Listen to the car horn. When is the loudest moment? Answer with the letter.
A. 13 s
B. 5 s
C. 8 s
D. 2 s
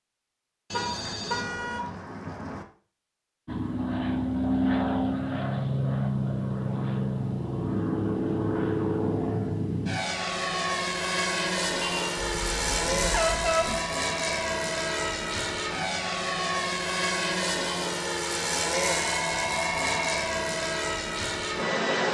A.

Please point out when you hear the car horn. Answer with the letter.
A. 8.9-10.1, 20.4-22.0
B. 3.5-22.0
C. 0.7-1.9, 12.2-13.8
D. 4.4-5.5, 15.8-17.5
C.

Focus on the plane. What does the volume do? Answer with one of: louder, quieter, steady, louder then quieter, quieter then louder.
steady.